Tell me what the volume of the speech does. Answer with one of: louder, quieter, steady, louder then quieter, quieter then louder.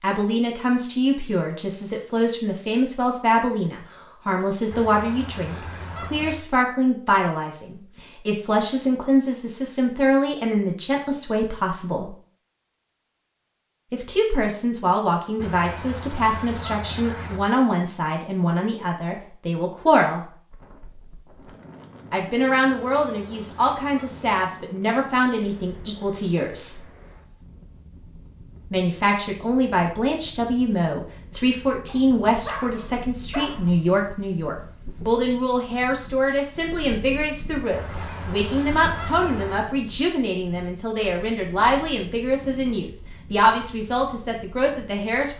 steady.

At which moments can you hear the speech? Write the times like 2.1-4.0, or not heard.
0.0-12.1, 13.9-20.4, 22.1-26.8, 28.7-45.3.